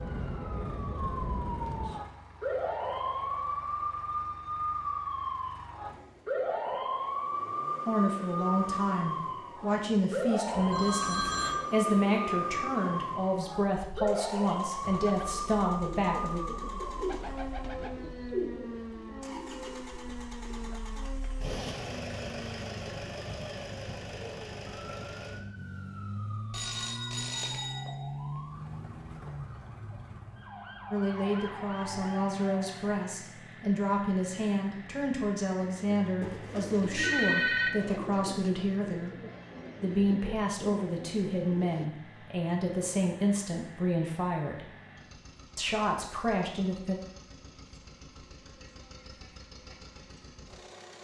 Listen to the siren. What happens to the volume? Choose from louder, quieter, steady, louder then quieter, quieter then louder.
quieter.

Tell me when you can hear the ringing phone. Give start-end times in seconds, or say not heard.
10.5-11.6, 26.5-27.9, 36.2-37.7.